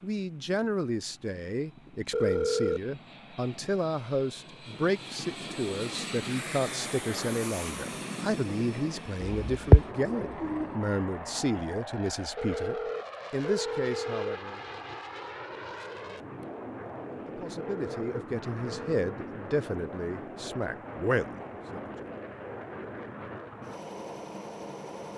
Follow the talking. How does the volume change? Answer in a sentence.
The loudness of the talking stays about the same.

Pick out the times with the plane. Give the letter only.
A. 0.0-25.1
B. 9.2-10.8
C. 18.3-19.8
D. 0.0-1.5
A.